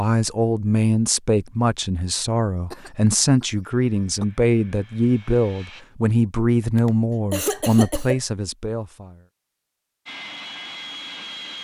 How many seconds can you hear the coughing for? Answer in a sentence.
You can hear the coughing for 3 seconds altogether.